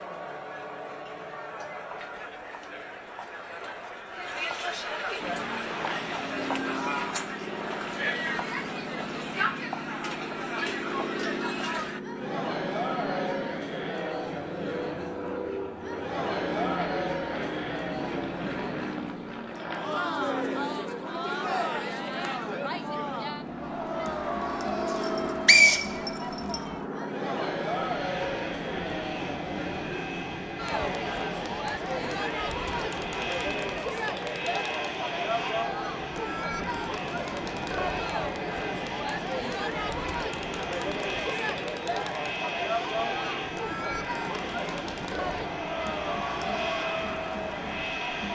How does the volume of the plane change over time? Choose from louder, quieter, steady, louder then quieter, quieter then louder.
steady.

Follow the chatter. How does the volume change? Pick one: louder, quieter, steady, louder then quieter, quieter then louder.
steady.